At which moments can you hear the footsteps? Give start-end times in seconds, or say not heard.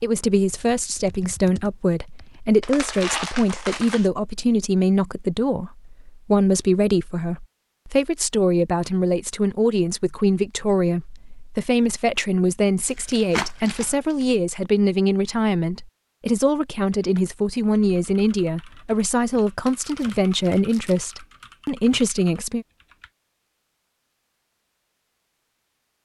not heard.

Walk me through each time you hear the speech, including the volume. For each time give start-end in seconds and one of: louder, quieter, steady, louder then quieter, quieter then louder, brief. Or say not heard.
0.0-22.6 steady.